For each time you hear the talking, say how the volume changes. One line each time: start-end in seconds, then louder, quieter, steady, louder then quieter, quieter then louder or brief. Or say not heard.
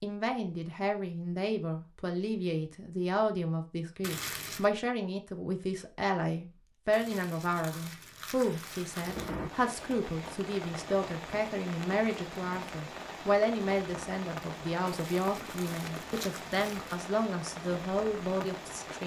0.0-19.0 steady.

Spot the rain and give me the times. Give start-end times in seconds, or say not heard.
8.4-19.0.